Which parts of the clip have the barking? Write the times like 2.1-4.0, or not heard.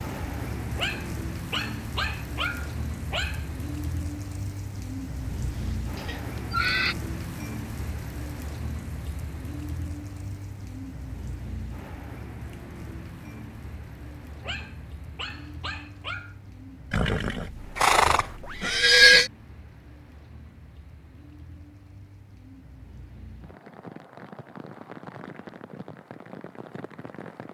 0.8-3.5, 14.4-16.4.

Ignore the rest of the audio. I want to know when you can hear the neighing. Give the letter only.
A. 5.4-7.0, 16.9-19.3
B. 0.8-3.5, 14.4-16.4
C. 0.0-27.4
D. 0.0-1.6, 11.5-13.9
A.